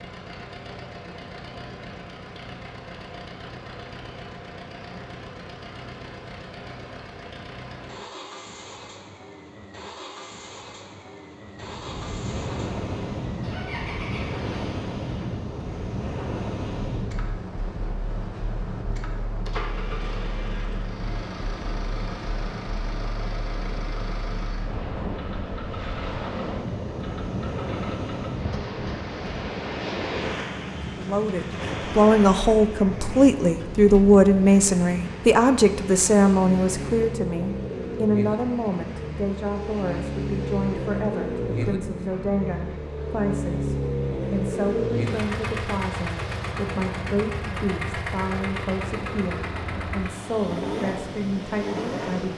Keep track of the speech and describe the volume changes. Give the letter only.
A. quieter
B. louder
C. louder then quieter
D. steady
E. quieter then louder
A.